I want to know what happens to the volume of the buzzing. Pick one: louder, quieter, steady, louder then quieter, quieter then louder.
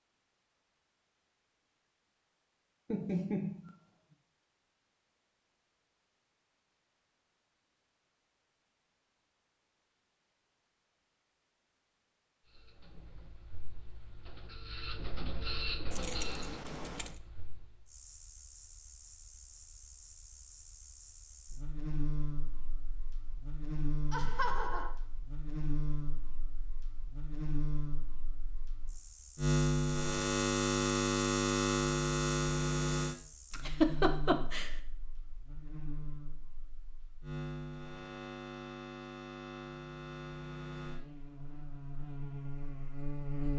louder then quieter.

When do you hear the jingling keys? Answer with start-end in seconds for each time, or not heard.
15.9-17.2.